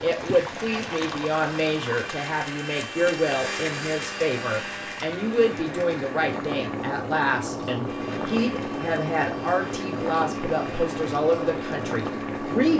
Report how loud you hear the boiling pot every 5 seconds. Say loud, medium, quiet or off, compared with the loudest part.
medium, loud, loud.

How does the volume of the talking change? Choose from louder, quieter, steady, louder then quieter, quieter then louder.
steady.